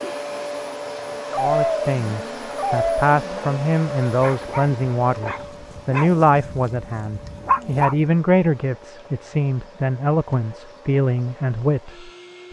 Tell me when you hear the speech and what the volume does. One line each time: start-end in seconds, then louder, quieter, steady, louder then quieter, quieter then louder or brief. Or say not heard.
1.4-12.1 steady.